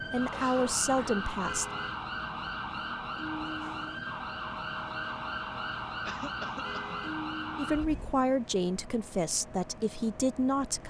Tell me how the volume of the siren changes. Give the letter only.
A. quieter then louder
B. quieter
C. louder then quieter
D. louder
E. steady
E.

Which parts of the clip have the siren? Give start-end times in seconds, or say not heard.
0.0-8.2.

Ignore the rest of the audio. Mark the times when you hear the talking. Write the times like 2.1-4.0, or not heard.
0.1-1.6, 7.5-10.8.